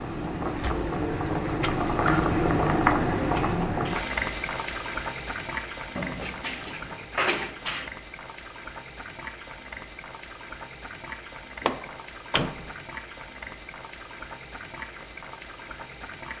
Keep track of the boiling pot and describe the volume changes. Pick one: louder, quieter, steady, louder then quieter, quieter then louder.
quieter.